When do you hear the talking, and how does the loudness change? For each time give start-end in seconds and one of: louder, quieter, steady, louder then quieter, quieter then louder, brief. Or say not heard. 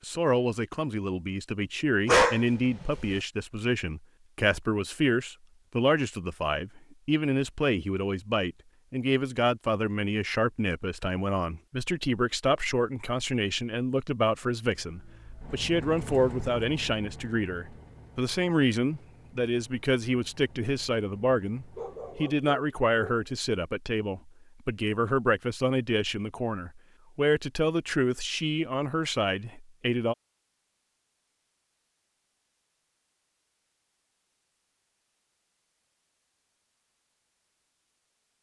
0.0-30.1 steady.